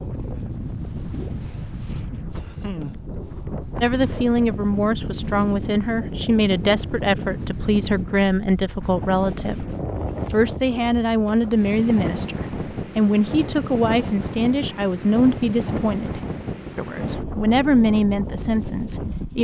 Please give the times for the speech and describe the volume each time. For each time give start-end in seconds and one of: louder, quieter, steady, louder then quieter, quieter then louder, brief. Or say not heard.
3.8-9.7 steady
10.3-19.3 quieter then louder.